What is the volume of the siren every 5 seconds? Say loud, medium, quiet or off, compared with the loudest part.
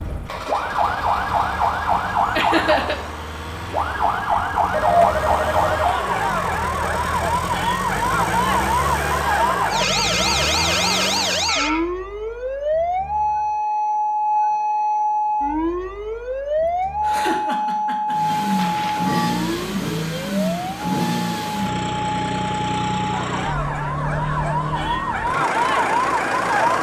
loud, loud, loud, loud, medium, loud.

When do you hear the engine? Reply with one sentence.
The engine can be heard from 0.0 to 11.6 s and from 18.1 to 26.7 s.